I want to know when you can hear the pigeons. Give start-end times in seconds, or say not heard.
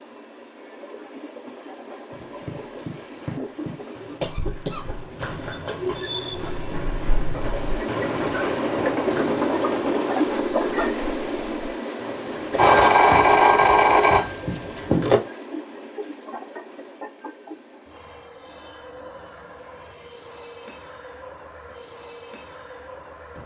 not heard.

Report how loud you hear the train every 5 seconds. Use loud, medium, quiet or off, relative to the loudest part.
quiet, loud, loud, quiet, quiet.